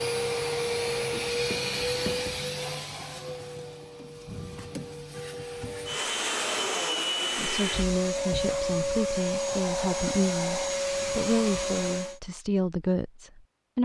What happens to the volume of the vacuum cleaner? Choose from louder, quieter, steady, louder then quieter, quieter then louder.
quieter then louder.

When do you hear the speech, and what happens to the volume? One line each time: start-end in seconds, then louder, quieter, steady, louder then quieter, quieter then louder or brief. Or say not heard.
7.3-13.8 steady.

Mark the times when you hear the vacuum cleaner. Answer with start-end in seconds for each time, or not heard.
0.0-12.2.